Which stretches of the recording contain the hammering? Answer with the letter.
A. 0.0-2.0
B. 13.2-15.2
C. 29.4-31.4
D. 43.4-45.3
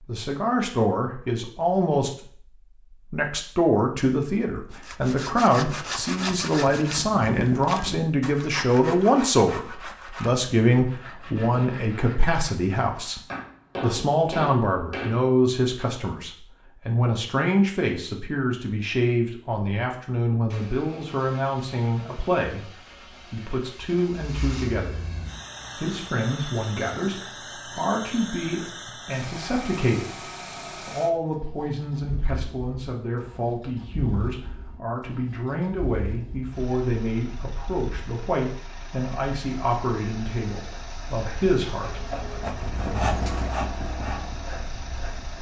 B.